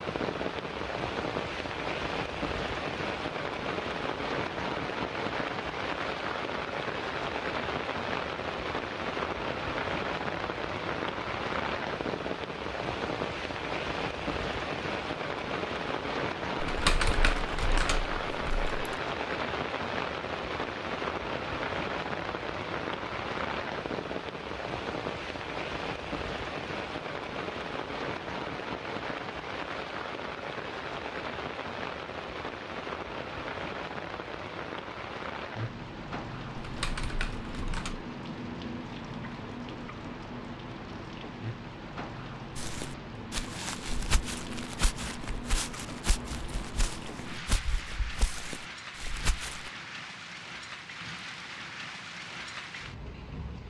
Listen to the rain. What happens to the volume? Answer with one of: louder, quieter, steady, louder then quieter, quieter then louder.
quieter.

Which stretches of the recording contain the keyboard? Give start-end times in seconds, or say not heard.
16.6-18.8, 36.5-38.0.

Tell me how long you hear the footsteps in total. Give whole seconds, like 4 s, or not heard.
7 s.